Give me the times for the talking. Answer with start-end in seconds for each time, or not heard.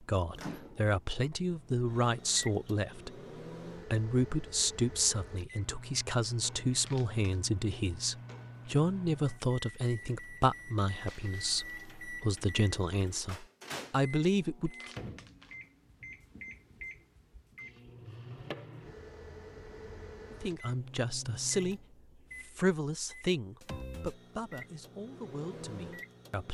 0.0-3.1, 3.9-14.9, 20.4-21.8, 22.4-26.4.